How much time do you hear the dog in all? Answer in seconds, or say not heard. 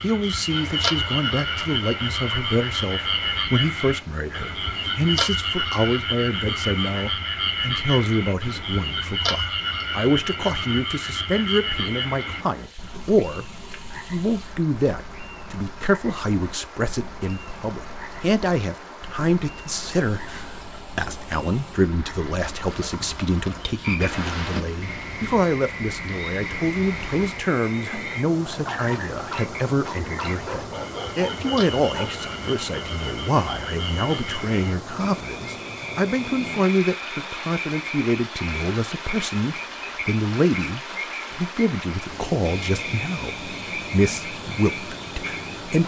2 s.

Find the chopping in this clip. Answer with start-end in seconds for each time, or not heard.
not heard.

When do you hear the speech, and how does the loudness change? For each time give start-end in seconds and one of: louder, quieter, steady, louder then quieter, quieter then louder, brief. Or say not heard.
0.0-45.8 steady.